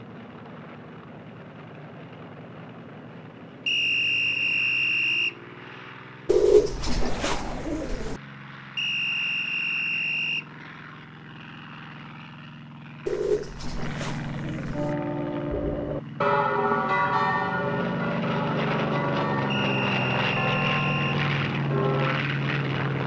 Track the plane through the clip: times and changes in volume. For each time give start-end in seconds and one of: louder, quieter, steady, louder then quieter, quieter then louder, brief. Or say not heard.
0.0-23.0 louder.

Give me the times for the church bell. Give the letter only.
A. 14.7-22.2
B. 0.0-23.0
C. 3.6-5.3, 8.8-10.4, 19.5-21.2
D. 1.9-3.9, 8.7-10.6
A.